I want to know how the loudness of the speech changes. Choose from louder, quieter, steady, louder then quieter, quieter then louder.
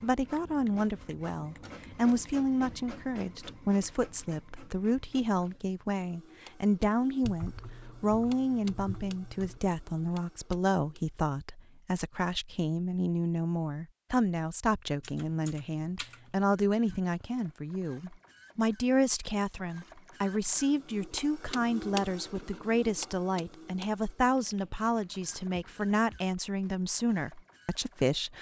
steady.